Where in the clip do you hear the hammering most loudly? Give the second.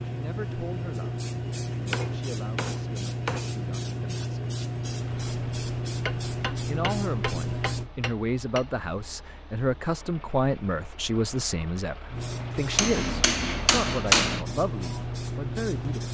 14 s.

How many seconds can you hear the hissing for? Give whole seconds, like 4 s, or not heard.
12 s.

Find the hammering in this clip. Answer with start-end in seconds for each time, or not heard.
1.7-3.5, 6.0-8.7, 12.8-14.4.